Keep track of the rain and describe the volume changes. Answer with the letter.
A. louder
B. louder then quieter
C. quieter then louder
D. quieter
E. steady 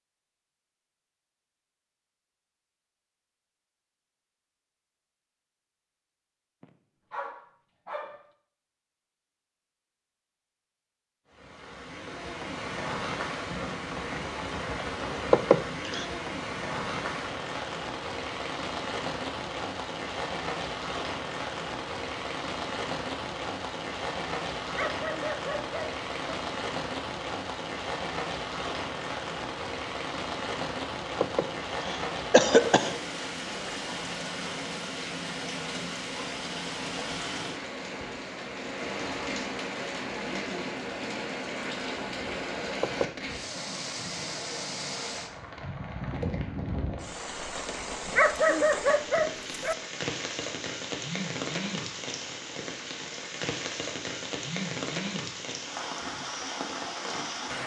E.